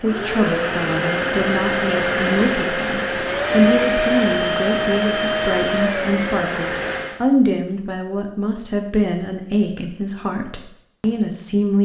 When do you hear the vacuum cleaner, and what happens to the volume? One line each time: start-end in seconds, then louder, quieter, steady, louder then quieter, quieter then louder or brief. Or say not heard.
0.0-7.2 steady.